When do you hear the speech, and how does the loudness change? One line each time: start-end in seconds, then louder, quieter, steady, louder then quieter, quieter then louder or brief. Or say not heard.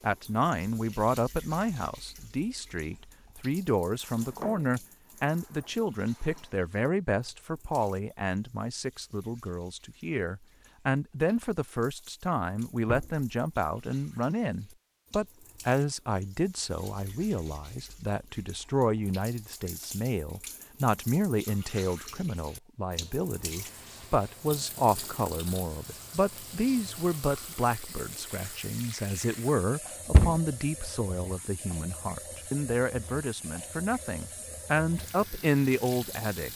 0.0-36.5 steady.